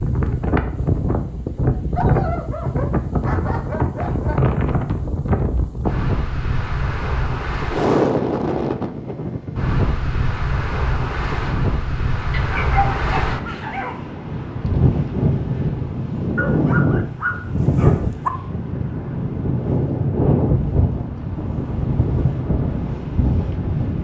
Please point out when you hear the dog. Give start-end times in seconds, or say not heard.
1.9-4.5, 12.3-14.0, 16.4-18.3.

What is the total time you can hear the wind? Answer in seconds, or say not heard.
24 s.